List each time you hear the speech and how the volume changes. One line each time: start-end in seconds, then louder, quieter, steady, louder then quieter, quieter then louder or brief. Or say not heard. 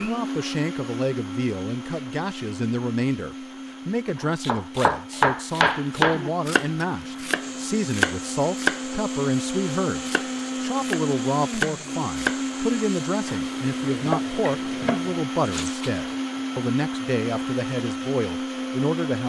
0.0-19.2 steady.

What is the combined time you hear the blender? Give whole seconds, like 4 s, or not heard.
19 s.